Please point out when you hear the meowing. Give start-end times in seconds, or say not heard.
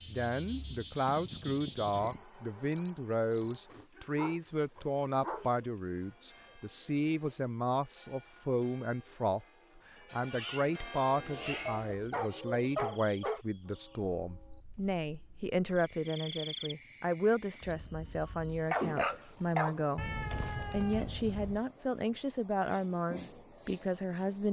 1.1-2.2, 10.2-12.4, 19.9-21.6.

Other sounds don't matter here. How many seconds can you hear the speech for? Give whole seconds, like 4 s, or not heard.
24 s.